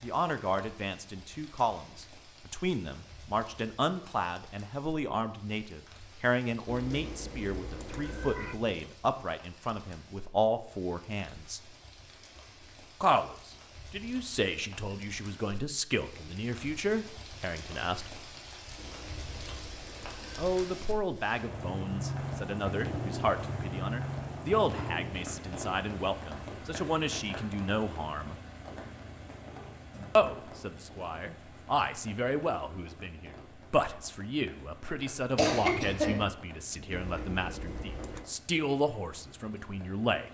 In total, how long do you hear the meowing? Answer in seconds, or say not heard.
5 s.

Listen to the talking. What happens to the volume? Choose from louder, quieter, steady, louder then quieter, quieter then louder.
steady.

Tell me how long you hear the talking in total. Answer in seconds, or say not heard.
35 s.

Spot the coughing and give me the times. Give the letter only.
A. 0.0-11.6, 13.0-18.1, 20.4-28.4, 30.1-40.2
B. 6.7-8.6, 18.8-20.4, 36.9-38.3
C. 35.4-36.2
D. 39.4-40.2
C.